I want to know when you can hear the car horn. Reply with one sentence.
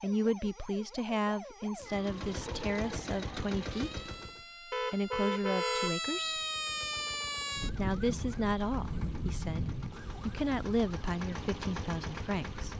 You can hear the car horn from 4.7 to 6.0 s.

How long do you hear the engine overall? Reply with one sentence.
You can hear the engine for 9 seconds altogether.